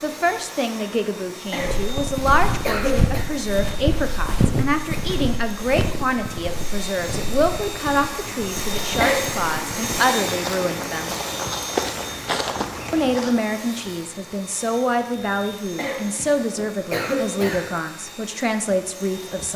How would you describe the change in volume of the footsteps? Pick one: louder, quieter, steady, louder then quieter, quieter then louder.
quieter then louder.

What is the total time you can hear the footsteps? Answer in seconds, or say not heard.
12 s.